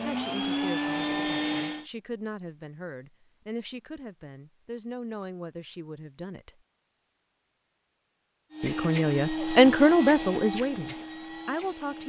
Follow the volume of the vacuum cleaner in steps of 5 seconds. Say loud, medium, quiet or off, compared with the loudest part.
loud, loud, medium.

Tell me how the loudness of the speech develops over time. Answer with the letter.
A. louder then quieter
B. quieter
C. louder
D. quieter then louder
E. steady
C.